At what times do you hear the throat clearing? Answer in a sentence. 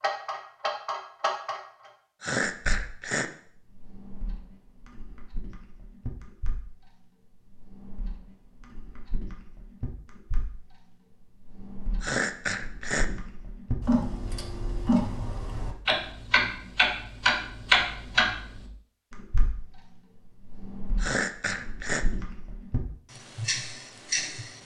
You can hear the throat clearing from 2.2 to 3.3 s, from 12.0 to 13.1 s and from 21.0 to 22.1 s.